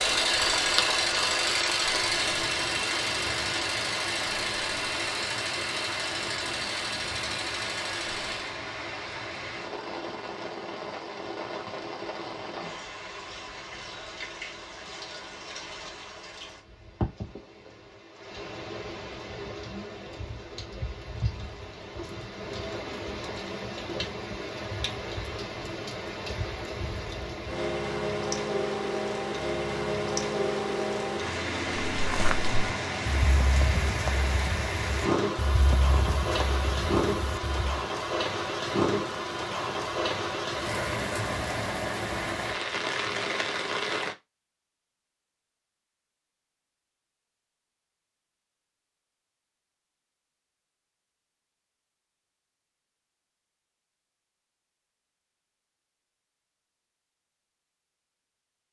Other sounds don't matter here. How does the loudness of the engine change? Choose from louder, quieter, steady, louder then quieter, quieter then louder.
quieter.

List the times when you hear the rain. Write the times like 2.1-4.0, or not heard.
0.0-44.1.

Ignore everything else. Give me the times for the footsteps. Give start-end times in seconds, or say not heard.
31.9-37.9.